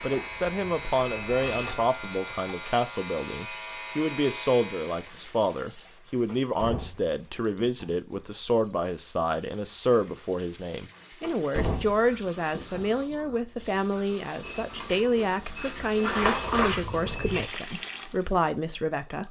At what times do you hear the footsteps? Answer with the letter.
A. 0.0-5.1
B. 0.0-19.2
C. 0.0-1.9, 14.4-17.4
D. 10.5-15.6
C.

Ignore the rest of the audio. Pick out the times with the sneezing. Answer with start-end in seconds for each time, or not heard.
not heard.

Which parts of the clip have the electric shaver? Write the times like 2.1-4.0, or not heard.
0.0-5.1.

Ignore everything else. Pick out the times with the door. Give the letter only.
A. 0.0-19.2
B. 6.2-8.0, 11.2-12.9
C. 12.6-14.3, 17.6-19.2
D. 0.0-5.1
B.